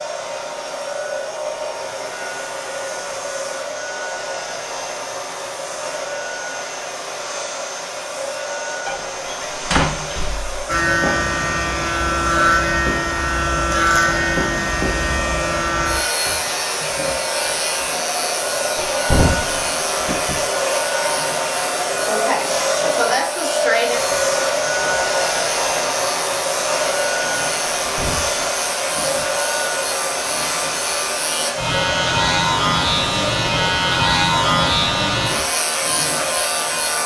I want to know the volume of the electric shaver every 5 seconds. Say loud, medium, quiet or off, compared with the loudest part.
off, off, loud, medium, medium, medium, loud, loud.